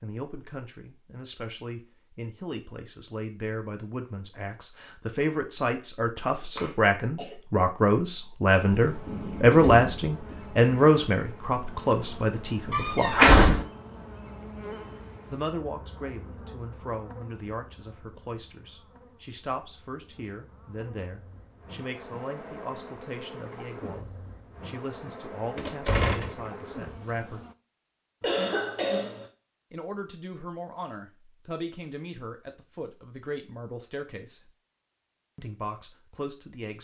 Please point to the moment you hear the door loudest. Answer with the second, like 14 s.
13 s.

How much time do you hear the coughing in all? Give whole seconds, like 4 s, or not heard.
2 s.